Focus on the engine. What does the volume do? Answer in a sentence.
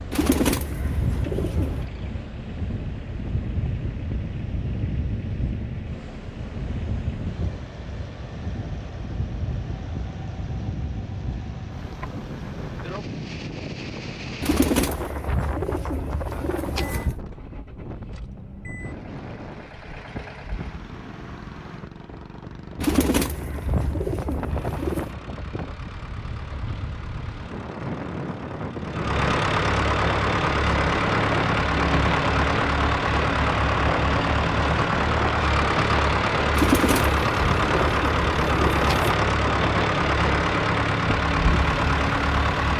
The volume of the engine goes up.